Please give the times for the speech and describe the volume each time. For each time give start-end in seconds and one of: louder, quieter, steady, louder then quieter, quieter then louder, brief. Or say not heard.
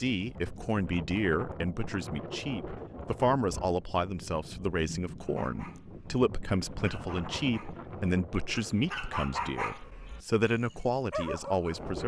0.0-12.0 steady.